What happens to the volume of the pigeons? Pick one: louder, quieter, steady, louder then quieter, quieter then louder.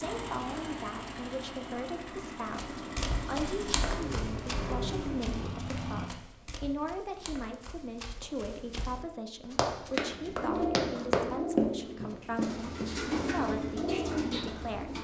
quieter then louder.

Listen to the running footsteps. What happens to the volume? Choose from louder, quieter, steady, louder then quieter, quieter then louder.
quieter then louder.